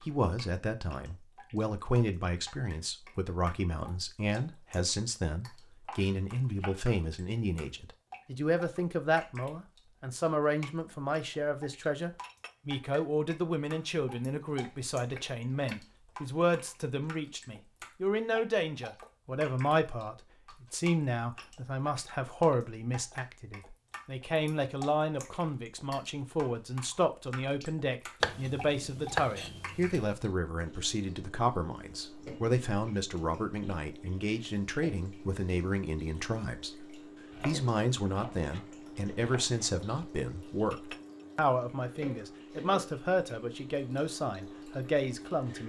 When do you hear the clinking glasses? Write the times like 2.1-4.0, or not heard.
12.2-12.8, 40.7-41.2.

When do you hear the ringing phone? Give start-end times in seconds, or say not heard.
not heard.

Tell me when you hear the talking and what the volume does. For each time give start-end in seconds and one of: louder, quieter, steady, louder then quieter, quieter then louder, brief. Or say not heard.
0.0-36.9 steady
37.5-45.6 steady.